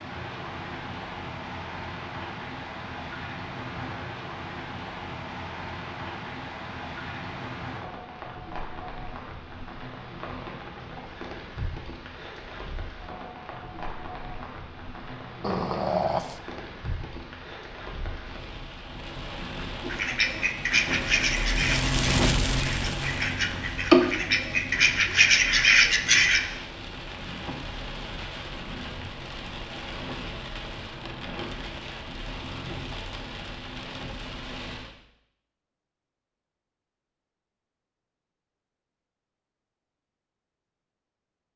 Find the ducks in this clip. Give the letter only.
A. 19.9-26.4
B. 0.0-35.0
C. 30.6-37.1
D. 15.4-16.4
A.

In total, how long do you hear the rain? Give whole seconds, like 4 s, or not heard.
35 s.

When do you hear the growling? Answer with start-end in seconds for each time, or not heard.
15.4-16.4.